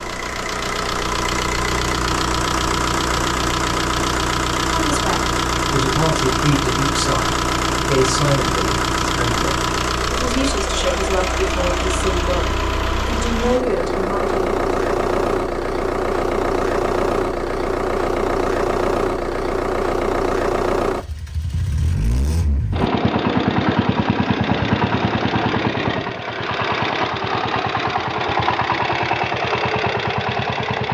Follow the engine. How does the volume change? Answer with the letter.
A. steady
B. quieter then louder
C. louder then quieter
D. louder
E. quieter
A.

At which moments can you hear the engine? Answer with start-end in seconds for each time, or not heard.
0.0-30.9.